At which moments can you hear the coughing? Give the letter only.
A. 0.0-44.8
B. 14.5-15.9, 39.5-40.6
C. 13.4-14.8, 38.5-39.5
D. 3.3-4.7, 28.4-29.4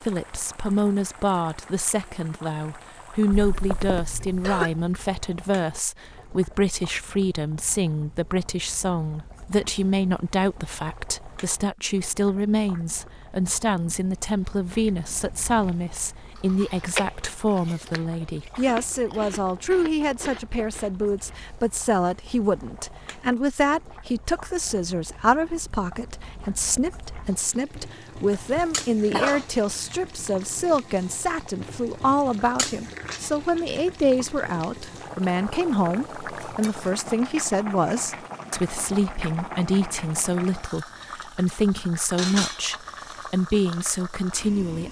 D.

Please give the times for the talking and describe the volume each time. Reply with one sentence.
The talking can be heard from 0.0 to 44.8 s, at a steady volume.